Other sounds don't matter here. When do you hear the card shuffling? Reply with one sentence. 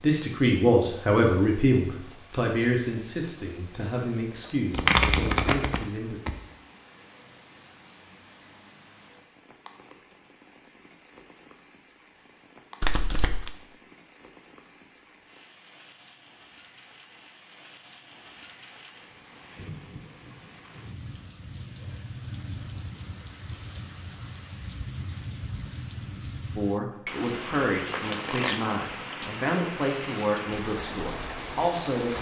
You can hear the card shuffling from 4.7 to 6.3 s, from 12.8 to 13.5 s and from 27.8 to 28.7 s.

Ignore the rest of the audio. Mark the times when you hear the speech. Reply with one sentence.
The speech can be heard from 0.0 to 6.2 s and from 26.6 to 32.1 s.